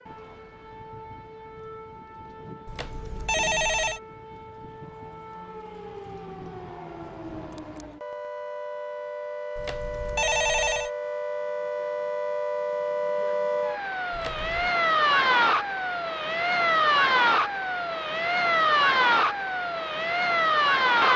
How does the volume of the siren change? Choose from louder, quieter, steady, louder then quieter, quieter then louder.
louder.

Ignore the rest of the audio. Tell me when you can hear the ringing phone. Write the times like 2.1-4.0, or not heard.
2.6-4.0, 9.6-10.9, 14.1-14.8.